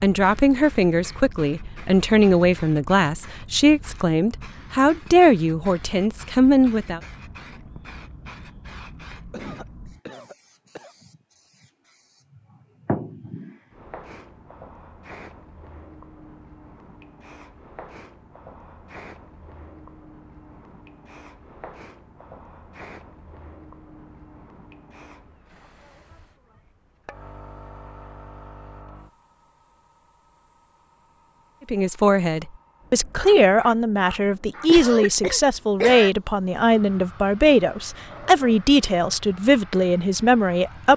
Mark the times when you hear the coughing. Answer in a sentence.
The coughing can be heard from 9.2 to 10.9 s and from 34.6 to 36.1 s.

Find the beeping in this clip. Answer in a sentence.
You can't hear the beeping here.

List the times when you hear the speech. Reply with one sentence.
You can hear the speech from 0.0 to 7.0 s and from 31.7 to 40.9 s.